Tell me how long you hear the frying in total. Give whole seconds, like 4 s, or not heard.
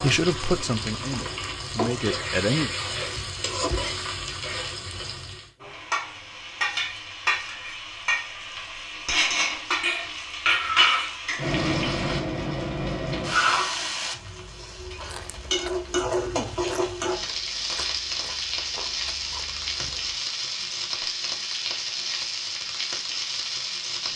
24 s.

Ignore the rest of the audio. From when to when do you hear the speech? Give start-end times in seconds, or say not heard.
0.0-2.7.